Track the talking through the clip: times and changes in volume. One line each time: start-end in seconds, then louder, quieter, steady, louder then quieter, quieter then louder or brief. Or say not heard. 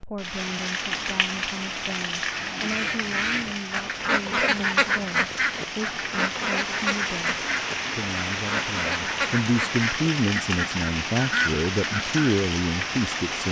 0.0-13.4 louder.